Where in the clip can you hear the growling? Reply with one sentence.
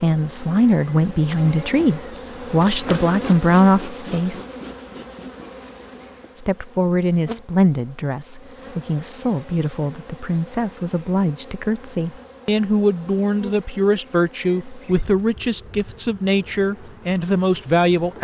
The growling can't be heard in this clip.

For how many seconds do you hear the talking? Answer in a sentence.
You can hear the talking for 16 seconds altogether.